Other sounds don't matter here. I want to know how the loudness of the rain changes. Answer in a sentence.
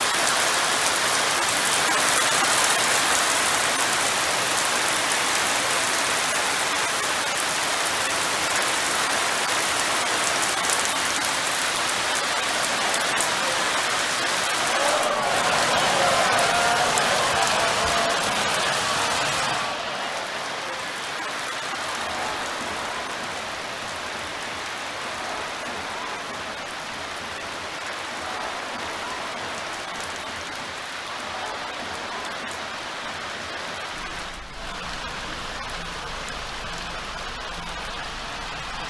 The volume of the rain goes down.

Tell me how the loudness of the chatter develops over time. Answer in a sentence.
The loudness of the chatter goes down.